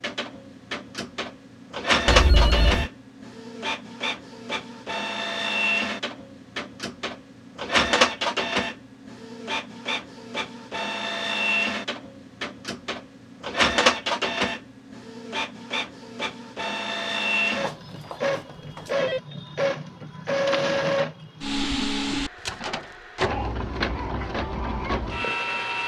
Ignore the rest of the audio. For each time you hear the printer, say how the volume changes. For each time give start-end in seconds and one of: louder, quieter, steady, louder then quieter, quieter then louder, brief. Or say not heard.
0.0-25.8 steady.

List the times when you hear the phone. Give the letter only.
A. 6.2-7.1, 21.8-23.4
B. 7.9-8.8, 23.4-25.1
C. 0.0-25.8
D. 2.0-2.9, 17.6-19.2
D.